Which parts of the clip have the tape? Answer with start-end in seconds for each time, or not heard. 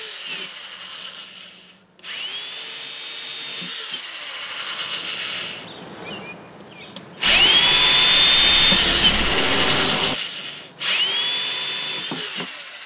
not heard.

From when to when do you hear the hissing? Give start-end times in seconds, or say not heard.
7.2-10.2.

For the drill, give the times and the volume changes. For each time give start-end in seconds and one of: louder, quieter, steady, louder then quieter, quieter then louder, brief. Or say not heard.
0.0-12.8 louder then quieter.